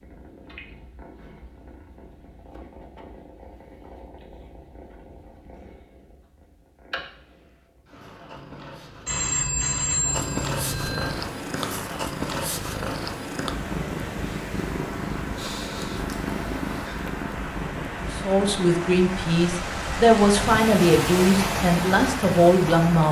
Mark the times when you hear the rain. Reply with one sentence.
The rain can be heard from 11.2 to 23.0 s.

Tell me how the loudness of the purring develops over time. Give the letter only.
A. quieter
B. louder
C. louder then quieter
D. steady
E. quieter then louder
B.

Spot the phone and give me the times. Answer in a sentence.
The phone can be heard from 9.1 to 11.1 s.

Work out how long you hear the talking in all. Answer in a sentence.
You can hear the talking for 5 seconds altogether.